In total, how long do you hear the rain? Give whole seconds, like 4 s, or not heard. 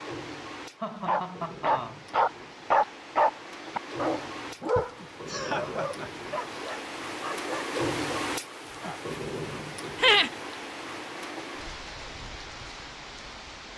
14 s.